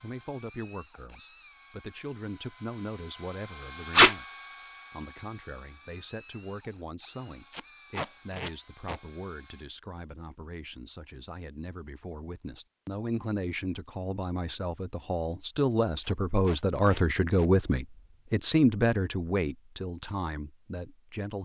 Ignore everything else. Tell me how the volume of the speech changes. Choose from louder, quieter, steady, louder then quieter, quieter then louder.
louder.